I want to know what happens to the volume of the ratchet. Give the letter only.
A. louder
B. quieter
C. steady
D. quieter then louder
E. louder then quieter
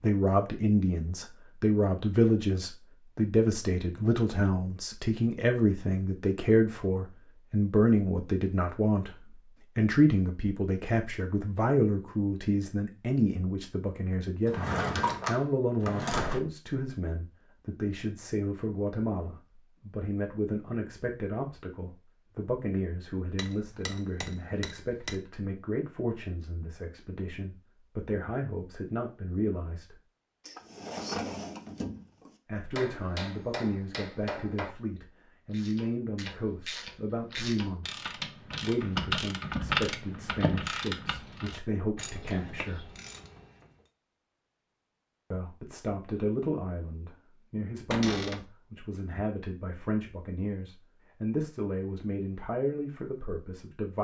E.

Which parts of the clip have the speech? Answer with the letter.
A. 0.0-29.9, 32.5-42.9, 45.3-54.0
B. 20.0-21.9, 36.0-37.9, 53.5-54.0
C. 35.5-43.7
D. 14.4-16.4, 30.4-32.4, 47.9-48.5
A.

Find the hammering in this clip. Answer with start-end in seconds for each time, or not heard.
23.4-25.2, 32.7-34.8.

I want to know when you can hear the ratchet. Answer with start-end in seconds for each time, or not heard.
35.5-43.7.